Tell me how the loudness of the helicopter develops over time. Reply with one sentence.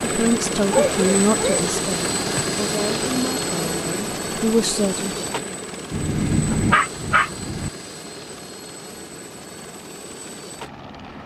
The volume of the helicopter goes down.